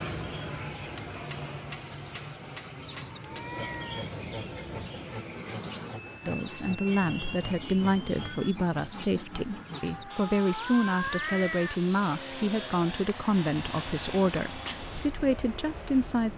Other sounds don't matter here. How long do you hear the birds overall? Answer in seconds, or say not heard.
11 s.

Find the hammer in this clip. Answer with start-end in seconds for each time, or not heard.
0.9-3.5.